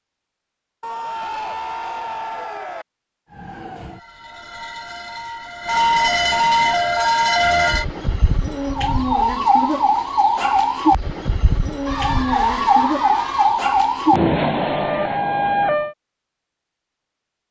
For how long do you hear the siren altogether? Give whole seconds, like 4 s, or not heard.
13 s.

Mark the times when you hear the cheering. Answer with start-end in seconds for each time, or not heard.
0.8-2.9, 11.8-13.6.